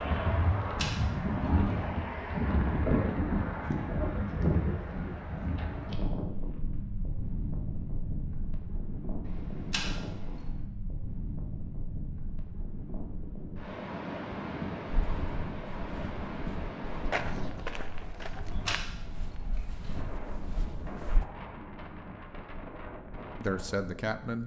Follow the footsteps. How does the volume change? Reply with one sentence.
The volume of the footsteps goes up, then down.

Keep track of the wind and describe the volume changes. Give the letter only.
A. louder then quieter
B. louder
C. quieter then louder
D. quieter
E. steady
D.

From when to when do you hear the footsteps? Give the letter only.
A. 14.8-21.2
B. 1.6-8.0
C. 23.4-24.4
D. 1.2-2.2
A.